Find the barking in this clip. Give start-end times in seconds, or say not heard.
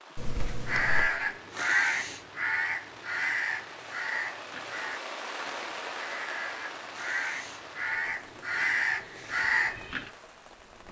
not heard.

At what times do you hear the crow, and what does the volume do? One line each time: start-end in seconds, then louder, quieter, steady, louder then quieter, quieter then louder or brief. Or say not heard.
0.7-10.1 quieter then louder.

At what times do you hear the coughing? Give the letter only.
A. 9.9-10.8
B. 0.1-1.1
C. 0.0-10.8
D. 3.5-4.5
B.